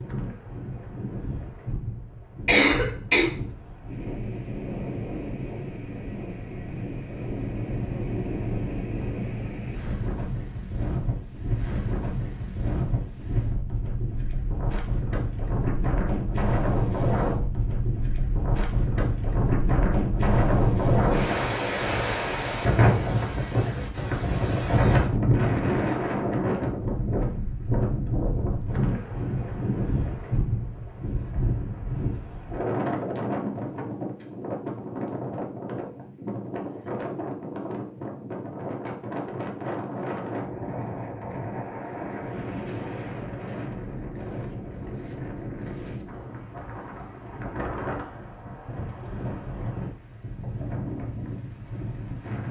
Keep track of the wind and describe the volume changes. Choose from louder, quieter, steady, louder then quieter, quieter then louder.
louder then quieter.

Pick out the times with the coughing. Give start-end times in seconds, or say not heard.
2.5-3.3.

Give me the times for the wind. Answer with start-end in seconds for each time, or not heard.
0.0-52.4.